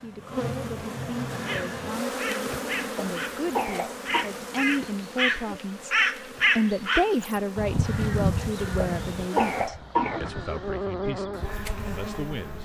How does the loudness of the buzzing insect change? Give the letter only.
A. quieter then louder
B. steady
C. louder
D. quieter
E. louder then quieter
A.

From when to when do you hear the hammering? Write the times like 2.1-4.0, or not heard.
not heard.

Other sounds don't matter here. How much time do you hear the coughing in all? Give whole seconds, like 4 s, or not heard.
3 s.